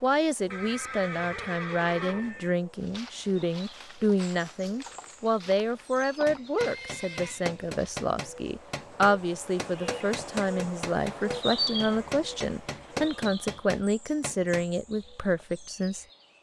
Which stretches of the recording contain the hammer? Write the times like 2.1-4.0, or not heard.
6.2-14.7.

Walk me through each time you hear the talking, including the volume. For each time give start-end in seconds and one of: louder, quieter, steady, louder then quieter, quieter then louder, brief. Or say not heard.
0.0-16.1 steady.